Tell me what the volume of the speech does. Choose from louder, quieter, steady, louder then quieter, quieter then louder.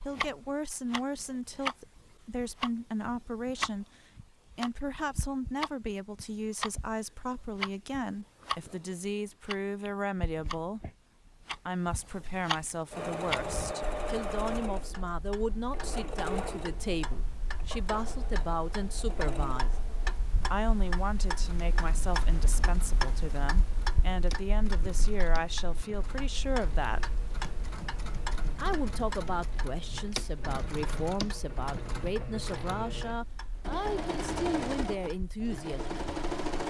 steady.